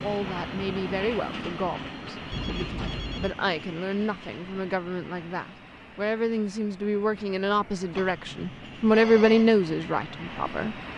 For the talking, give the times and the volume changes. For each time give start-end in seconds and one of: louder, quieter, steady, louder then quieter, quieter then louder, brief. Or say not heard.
0.0-10.8 louder.